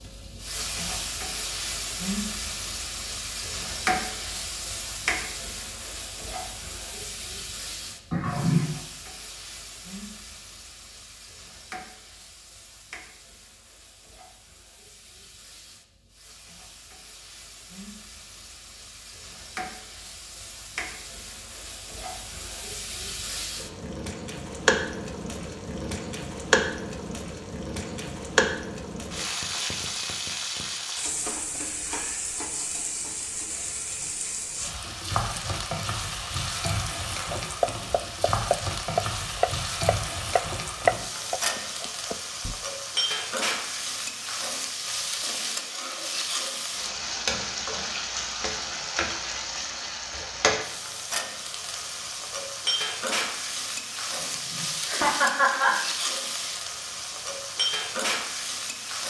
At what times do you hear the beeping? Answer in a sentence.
The beeping can't be heard in this clip.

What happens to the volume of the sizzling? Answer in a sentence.
The volume of the sizzling goes down, then up.